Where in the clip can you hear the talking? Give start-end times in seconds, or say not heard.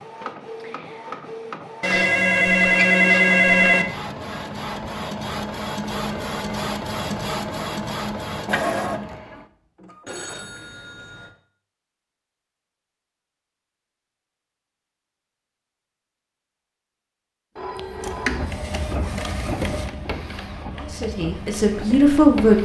20.8-22.6.